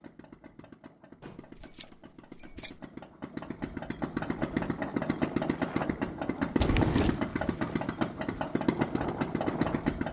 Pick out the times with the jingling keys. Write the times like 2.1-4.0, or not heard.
1.2-2.8, 6.6-7.2.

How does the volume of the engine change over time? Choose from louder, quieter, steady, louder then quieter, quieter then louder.
louder.